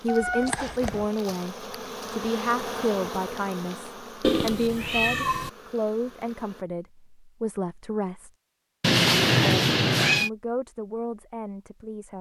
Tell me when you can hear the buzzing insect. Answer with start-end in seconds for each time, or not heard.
0.0-6.7.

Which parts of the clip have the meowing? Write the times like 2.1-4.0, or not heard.
0.1-1.1, 4.2-5.5, 8.8-10.3.